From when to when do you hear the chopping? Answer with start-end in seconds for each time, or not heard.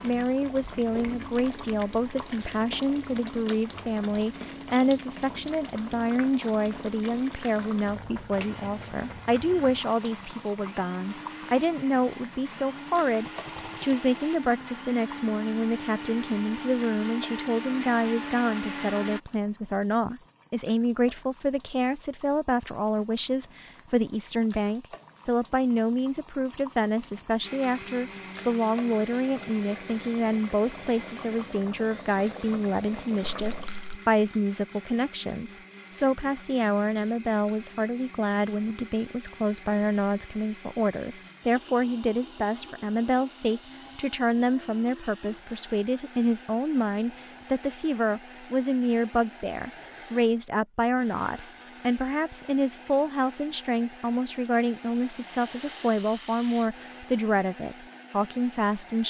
not heard.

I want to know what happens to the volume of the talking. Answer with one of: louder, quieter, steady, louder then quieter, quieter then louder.
steady.